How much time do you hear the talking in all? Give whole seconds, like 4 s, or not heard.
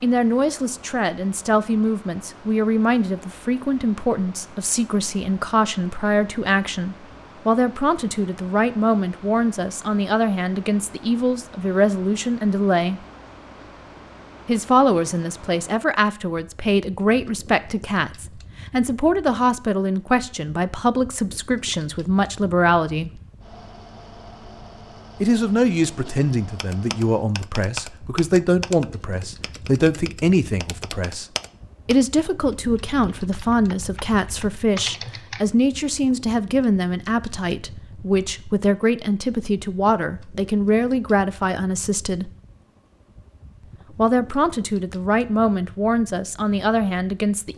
42 s.